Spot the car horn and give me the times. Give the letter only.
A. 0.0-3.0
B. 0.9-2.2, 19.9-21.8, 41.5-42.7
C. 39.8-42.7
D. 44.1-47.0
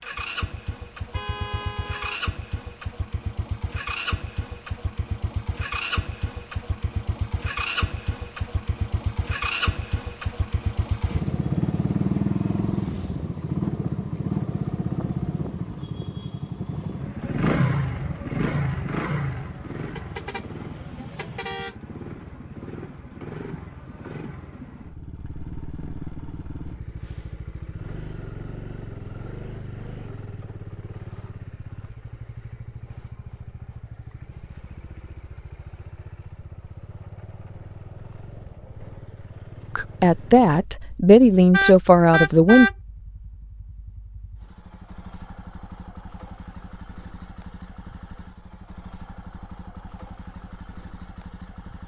B.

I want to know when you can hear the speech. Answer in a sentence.
You can hear the speech from 39.8 to 42.7 s.